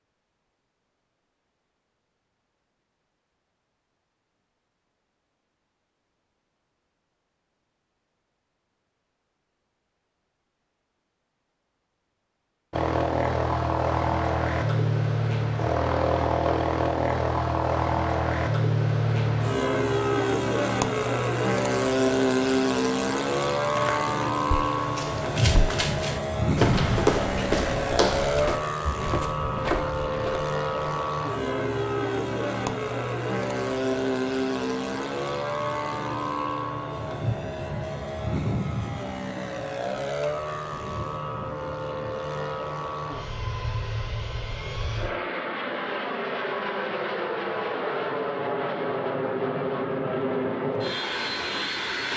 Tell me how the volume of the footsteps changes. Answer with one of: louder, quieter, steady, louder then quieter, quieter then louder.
louder then quieter.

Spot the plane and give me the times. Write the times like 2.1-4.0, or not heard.
12.7-52.1.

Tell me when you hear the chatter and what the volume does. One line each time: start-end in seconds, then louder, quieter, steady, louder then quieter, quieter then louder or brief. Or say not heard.
not heard.